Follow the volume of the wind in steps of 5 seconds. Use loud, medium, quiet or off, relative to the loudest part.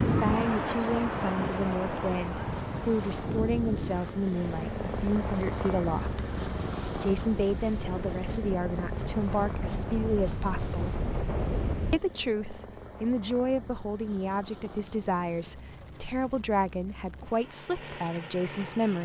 loud, medium, loud, off.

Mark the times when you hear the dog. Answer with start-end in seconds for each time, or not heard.
not heard.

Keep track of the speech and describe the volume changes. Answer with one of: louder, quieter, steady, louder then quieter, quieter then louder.
steady.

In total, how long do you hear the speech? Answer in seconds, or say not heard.
17 s.